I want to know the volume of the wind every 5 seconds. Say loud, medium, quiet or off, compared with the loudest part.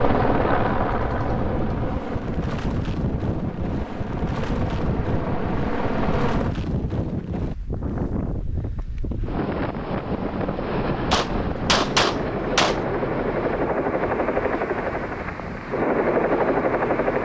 loud, loud, loud, medium.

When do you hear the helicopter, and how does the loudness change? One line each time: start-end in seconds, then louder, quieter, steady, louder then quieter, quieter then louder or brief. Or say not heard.
0.0-6.5 quieter then louder
9.9-17.2 louder.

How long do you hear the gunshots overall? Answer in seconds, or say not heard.
2 s.